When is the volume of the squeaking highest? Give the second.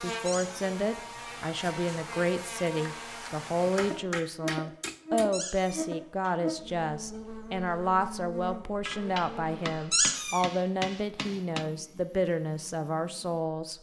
10 s.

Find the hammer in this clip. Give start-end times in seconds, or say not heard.
3.6-5.3, 8.8-11.7.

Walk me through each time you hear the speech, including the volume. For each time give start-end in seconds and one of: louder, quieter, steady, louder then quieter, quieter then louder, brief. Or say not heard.
0.0-13.7 steady.